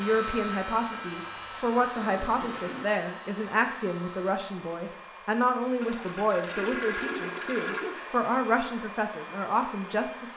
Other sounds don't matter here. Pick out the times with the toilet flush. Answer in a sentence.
The toilet flush can be heard from 0.8 to 2.9 s and from 5.8 to 8.1 s.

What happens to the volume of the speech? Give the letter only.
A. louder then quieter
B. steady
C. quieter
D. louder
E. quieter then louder
B.